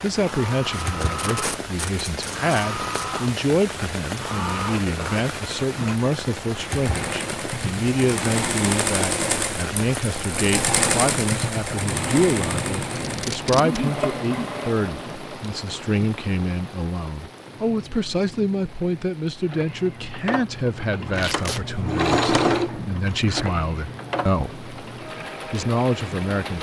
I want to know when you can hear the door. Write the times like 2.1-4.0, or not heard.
not heard.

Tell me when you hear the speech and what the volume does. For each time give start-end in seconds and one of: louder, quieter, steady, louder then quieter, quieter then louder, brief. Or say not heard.
0.0-24.6 steady
25.4-26.5 brief.